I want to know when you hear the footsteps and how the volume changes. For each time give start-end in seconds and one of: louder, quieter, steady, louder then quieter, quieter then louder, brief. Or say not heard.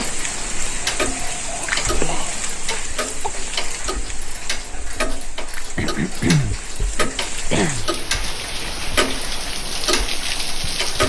not heard.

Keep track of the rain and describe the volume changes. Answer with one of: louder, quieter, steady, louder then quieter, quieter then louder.
quieter then louder.